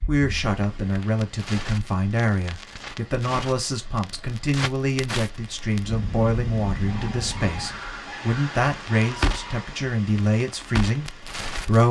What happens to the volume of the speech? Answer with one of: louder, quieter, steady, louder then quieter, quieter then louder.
steady.